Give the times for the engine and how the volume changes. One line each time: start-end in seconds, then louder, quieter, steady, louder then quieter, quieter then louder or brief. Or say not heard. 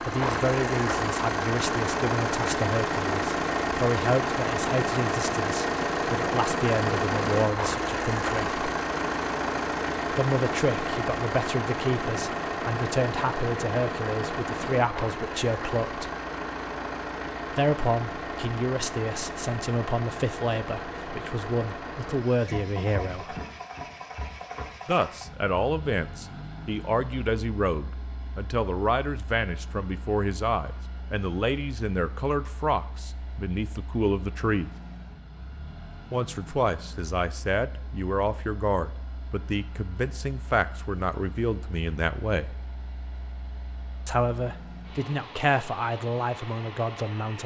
0.0-47.4 quieter.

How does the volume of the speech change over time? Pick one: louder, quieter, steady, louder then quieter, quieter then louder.
steady.